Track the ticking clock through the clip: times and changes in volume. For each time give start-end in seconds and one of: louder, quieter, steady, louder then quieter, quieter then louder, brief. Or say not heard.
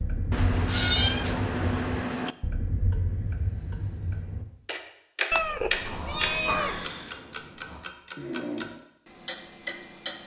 0.0-10.2 louder then quieter.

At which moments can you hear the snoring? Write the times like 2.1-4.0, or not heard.
5.8-8.7.